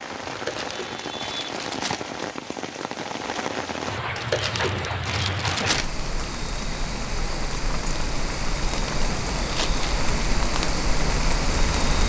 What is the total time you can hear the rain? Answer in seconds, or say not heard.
12 s.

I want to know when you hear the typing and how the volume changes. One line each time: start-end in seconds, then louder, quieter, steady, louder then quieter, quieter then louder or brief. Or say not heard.
not heard.